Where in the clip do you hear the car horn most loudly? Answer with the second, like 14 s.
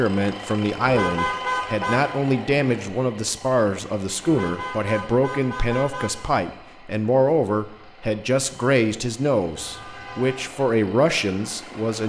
1 s.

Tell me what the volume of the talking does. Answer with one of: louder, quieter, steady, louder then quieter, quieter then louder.
steady.